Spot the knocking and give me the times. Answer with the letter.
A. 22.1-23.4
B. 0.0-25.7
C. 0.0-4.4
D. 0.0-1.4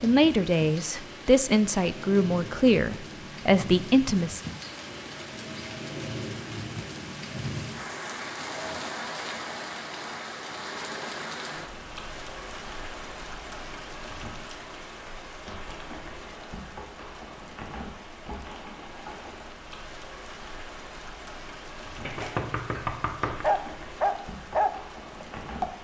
A.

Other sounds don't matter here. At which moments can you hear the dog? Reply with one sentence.
You can hear the dog from 22.8 to 25.7 s.